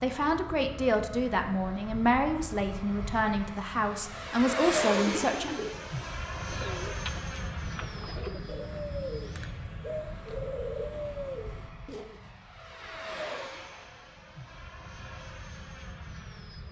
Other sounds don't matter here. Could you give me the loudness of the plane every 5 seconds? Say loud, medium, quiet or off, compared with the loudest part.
loud, loud, medium, medium.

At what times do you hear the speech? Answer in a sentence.
You can hear the speech from 0.0 to 5.5 s.